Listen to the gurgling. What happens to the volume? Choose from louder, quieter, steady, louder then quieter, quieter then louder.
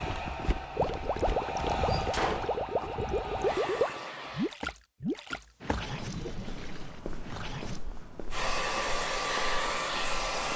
quieter.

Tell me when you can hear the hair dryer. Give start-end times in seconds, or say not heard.
0.0-4.5, 8.3-10.5.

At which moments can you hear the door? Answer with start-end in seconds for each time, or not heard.
1.9-2.9.